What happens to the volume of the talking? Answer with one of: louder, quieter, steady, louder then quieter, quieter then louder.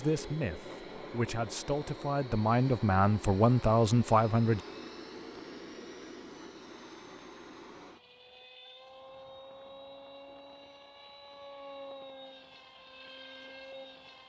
louder.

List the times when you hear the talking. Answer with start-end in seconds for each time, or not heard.
0.0-4.6.